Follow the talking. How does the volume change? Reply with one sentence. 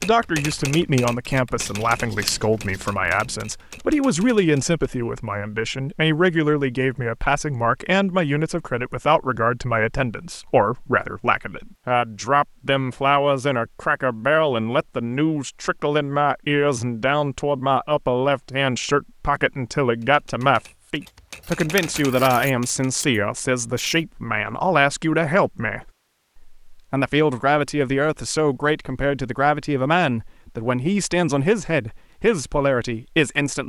The loudness of the talking stays about the same.